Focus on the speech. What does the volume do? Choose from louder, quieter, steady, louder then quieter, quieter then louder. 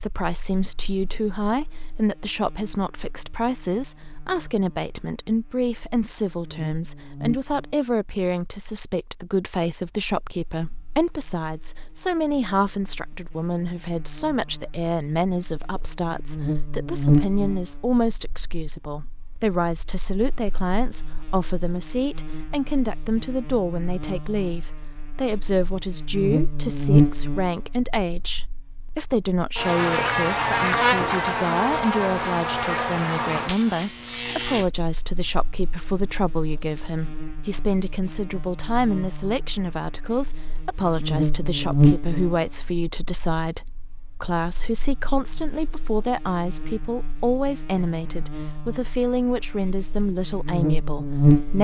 steady.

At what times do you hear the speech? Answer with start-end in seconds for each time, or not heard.
0.0-51.5.